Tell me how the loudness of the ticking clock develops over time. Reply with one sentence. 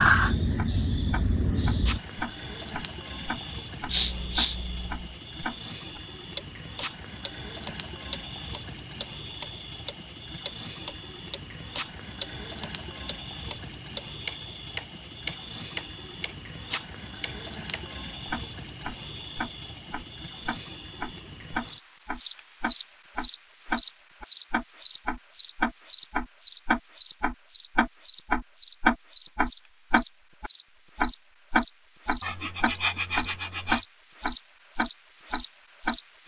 The loudness of the ticking clock goes up.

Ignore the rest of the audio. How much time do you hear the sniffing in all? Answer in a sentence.
The sniffing can be heard for 3 seconds in total.